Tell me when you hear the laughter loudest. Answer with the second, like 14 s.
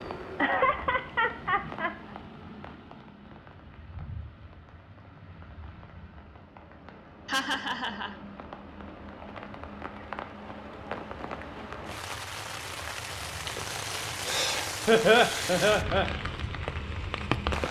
15 s.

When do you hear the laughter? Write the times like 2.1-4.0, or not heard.
0.3-1.9, 7.2-8.2, 14.8-16.1.